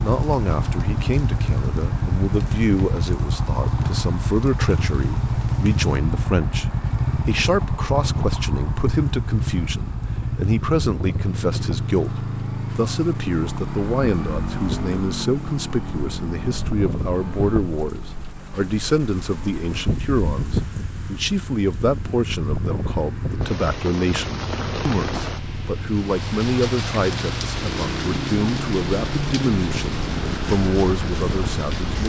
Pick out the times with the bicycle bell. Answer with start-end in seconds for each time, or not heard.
not heard.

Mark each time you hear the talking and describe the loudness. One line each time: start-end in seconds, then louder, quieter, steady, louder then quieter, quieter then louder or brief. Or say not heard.
0.0-32.0 steady.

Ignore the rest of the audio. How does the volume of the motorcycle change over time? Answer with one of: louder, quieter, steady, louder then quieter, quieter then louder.
quieter then louder.